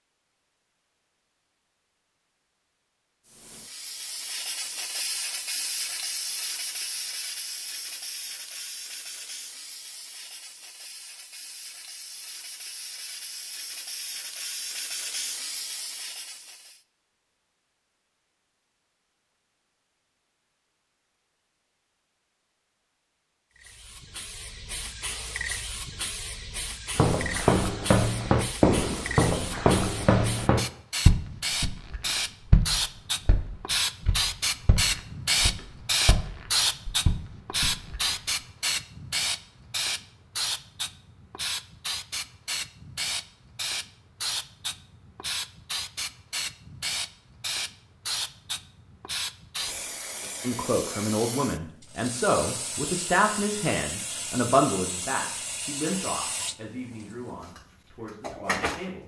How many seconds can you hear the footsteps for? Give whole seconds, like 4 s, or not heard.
11 s.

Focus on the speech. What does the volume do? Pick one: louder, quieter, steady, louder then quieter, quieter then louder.
quieter.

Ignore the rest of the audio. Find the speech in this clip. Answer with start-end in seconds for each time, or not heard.
50.4-59.0.